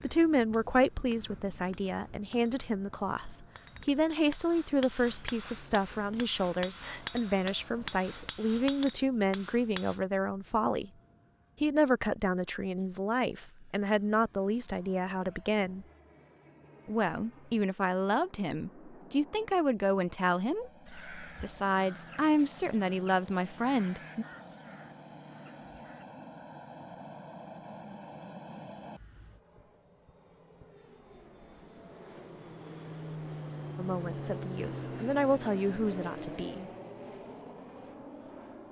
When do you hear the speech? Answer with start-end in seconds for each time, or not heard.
0.0-10.9, 11.6-15.8, 16.9-24.2, 33.8-36.7.